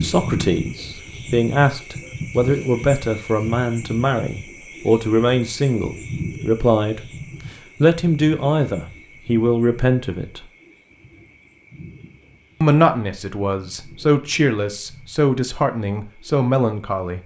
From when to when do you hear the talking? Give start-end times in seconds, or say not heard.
0.0-7.0, 7.8-10.4, 12.6-17.2.